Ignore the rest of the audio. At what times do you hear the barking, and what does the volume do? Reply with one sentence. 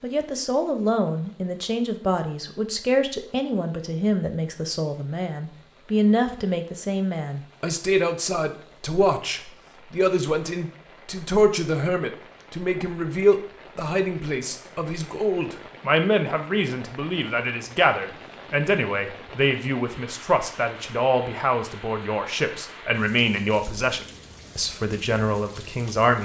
You can't hear the barking here.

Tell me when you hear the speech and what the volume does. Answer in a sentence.
You can hear the speech from 0.0 to 26.1 s, at a steady volume.